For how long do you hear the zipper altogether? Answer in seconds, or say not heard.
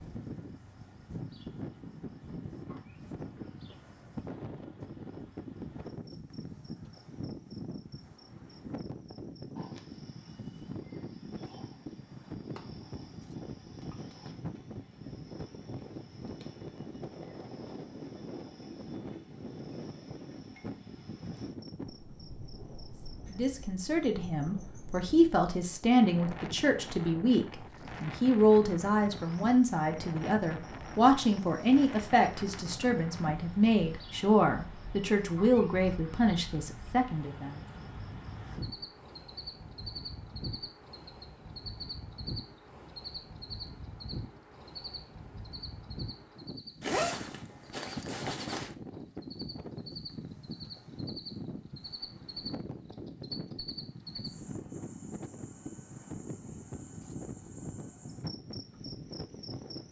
2 s.